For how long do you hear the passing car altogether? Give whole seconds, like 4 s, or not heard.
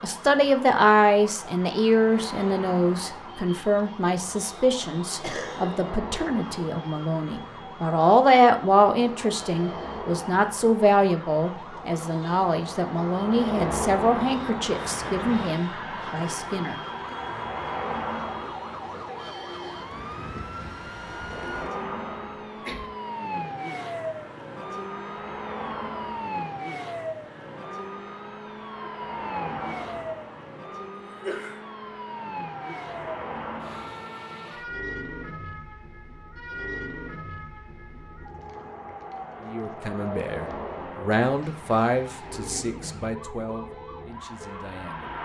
45 s.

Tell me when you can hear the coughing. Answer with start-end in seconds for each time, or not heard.
5.0-5.7, 22.4-22.9, 31.2-31.6.